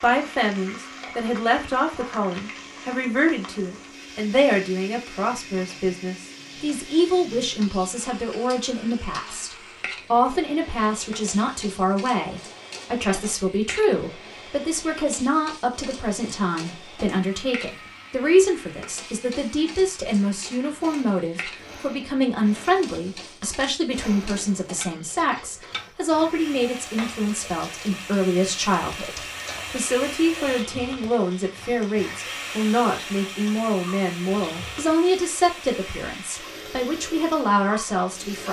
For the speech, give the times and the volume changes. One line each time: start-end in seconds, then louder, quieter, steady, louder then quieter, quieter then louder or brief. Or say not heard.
0.0-38.4 steady.